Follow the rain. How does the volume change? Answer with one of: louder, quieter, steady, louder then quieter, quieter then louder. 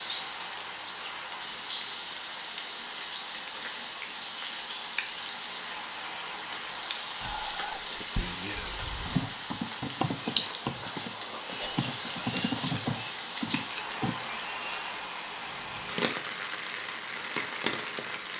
steady.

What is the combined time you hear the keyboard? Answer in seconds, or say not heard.
5 s.